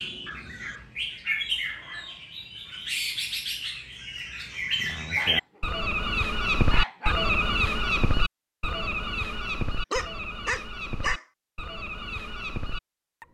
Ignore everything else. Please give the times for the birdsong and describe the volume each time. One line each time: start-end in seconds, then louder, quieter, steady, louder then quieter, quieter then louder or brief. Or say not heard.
0.0-13.2 louder then quieter.